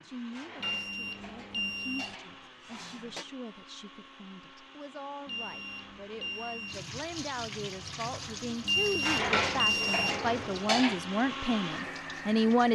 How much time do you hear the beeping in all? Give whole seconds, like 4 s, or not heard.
5 s.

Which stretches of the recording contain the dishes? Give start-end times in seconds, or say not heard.
0.3-3.2, 9.0-11.0.